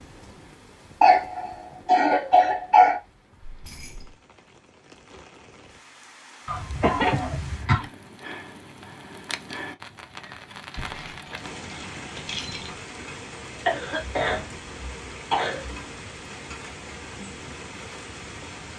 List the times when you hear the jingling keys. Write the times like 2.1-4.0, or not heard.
3.4-4.2, 10.8-12.8.